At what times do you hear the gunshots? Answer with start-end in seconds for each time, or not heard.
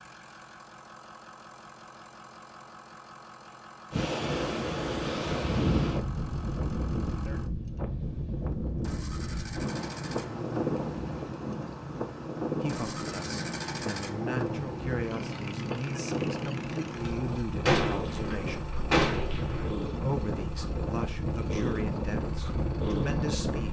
16.9-19.7.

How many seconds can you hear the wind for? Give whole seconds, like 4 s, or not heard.
20 s.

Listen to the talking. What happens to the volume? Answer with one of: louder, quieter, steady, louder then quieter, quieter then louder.
steady.